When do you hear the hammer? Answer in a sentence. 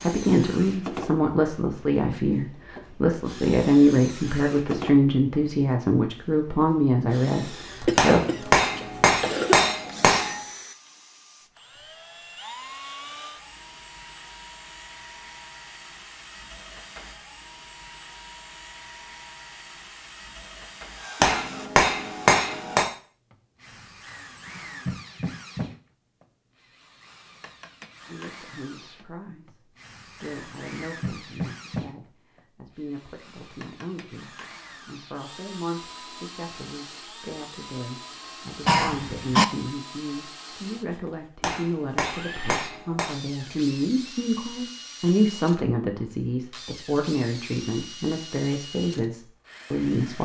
You can hear the hammer from 8.0 to 10.3 s, from 21.2 to 22.9 s and from 41.4 to 43.1 s.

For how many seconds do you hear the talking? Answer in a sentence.
You can hear the talking for 30 seconds altogether.